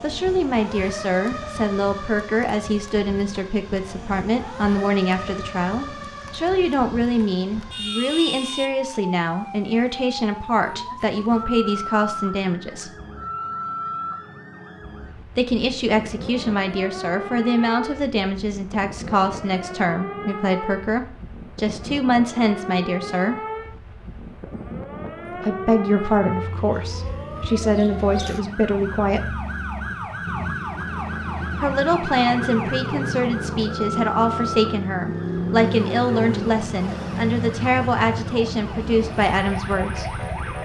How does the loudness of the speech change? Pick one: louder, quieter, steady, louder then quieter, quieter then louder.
steady.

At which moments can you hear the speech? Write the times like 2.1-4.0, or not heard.
0.0-12.9, 15.3-23.4, 25.3-29.4, 31.6-40.1.